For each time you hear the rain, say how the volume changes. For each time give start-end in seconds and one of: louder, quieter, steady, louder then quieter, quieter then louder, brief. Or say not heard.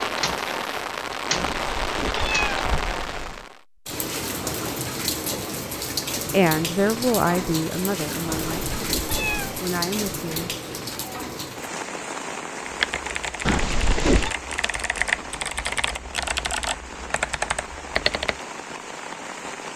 0.0-19.7 quieter.